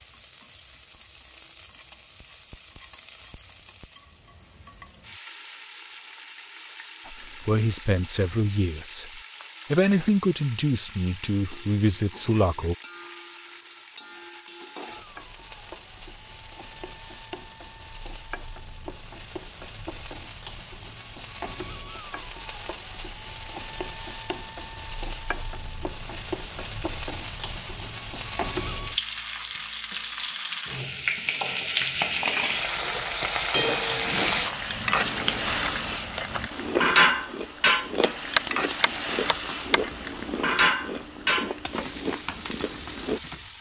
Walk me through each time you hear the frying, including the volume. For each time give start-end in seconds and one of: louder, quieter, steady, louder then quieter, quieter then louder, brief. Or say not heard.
0.0-43.5 louder.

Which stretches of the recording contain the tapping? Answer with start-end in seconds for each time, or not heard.
38.4-39.8.